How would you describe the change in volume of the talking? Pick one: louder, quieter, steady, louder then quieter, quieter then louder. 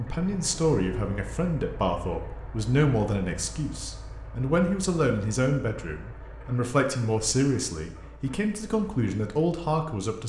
steady.